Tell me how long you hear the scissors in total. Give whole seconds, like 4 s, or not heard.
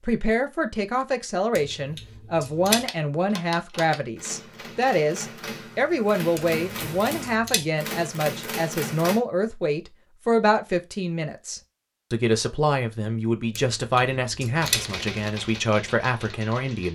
4 s.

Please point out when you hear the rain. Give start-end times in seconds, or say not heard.
not heard.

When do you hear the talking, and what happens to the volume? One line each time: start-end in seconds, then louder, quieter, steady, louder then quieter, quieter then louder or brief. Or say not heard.
0.0-16.9 steady.